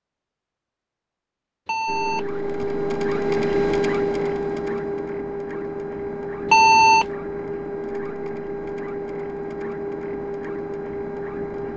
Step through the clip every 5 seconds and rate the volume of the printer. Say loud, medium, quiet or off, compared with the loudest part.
loud, medium, medium.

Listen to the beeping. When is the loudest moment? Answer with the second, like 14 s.
7 s.